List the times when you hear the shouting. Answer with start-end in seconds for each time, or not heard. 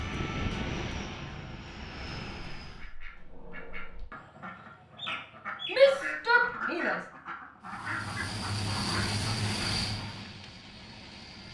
5.7-7.0.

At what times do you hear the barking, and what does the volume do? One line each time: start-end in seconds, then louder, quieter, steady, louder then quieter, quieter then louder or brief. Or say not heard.
not heard.